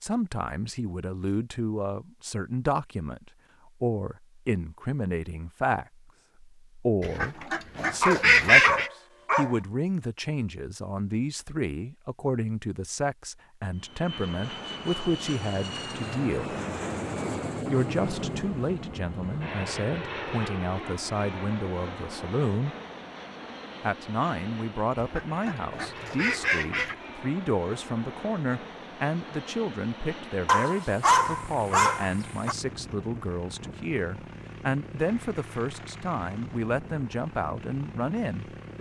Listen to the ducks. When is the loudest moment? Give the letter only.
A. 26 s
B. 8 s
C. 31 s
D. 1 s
B.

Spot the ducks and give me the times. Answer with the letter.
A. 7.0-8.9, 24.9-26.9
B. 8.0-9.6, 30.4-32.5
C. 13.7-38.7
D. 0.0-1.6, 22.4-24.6
A.